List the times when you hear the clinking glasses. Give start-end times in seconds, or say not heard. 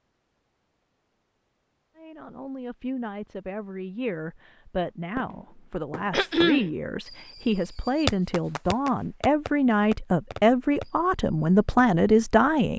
not heard.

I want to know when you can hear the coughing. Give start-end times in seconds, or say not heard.
6.1-6.7.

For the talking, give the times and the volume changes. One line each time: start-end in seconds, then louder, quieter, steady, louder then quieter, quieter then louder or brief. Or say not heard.
1.9-12.7 louder.